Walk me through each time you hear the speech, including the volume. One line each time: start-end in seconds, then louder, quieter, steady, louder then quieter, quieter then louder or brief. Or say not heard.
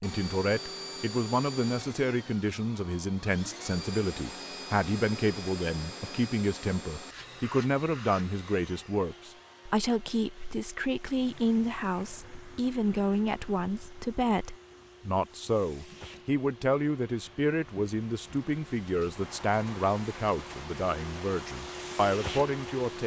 0.0-23.0 steady.